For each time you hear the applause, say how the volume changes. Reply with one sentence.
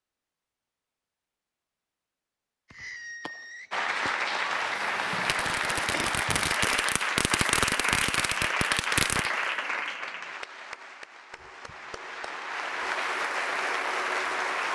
You can hear the applause from 3.7 to 14.7 s, getting quieter then louder.